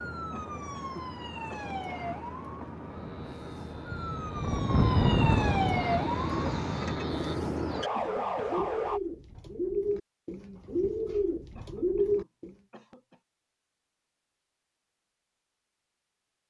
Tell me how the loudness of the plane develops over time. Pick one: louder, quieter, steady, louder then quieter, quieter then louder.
louder then quieter.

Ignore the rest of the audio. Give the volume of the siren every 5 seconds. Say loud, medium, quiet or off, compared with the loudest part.
medium, loud, off, off.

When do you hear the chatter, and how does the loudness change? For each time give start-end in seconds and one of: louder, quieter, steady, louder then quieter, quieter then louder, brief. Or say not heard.
not heard.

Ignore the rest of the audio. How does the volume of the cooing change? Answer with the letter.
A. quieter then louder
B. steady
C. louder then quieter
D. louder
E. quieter
D.